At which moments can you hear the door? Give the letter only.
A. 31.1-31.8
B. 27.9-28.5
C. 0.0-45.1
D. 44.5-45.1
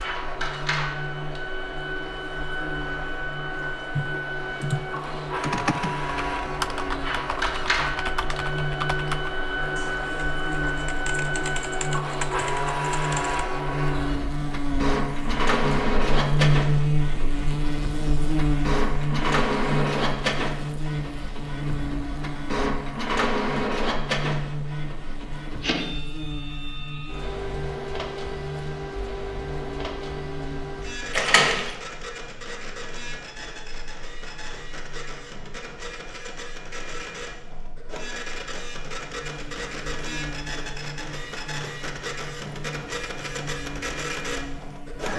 A.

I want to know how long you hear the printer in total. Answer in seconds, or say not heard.
45 s.